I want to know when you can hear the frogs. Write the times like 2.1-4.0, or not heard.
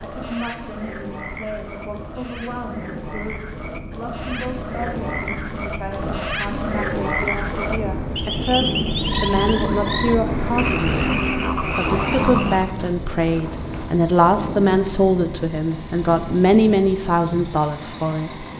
0.0-12.8.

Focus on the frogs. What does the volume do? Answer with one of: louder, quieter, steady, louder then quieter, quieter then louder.
louder.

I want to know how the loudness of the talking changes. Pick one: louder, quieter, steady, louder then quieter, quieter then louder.
louder.